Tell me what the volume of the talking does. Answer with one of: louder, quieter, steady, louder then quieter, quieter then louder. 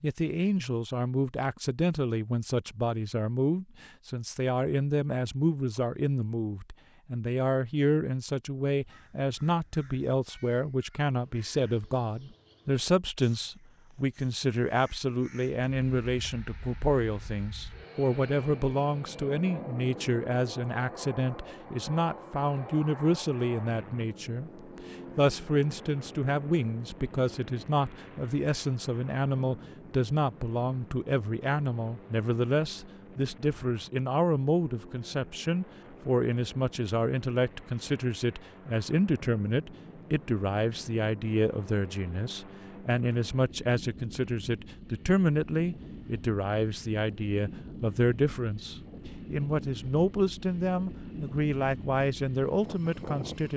steady.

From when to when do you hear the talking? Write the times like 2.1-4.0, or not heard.
0.0-53.5.